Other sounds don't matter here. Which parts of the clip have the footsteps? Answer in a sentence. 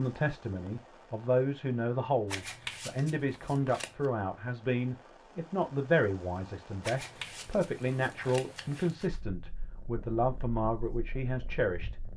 You can't hear the footsteps here.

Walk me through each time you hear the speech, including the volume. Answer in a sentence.
You can hear the speech from 0.0 to 11.9 s, at a steady volume.